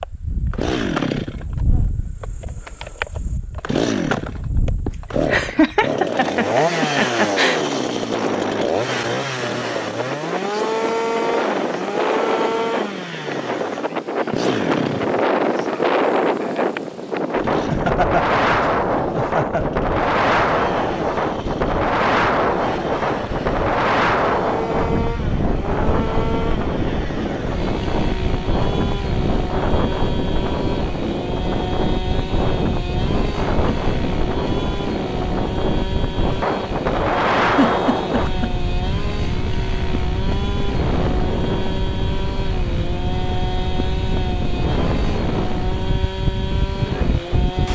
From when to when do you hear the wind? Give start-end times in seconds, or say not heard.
0.0-47.7.